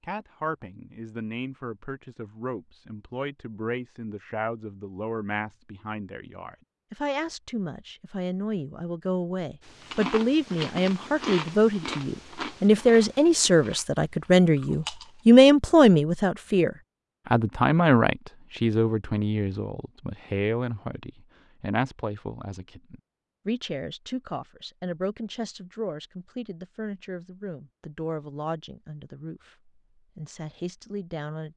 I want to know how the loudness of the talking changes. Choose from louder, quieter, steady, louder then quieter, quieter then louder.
louder then quieter.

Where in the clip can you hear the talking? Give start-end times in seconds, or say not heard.
0.0-31.5.